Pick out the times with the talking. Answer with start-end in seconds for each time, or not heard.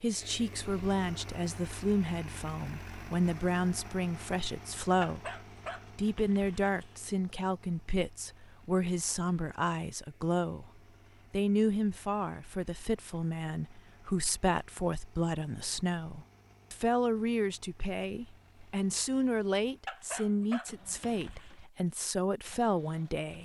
0.0-5.3, 6.0-10.7, 11.3-23.4.